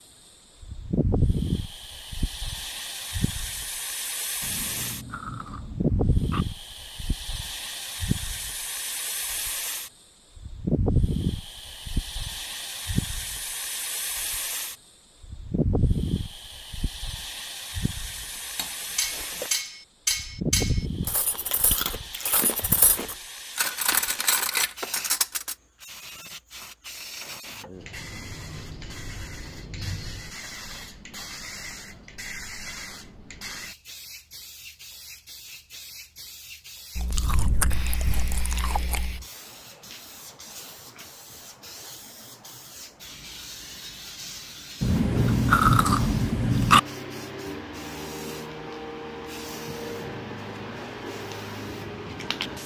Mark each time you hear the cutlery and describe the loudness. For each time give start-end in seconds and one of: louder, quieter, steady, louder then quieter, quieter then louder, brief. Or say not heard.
18.6-25.6 quieter then louder.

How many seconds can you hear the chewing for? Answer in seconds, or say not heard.
9 s.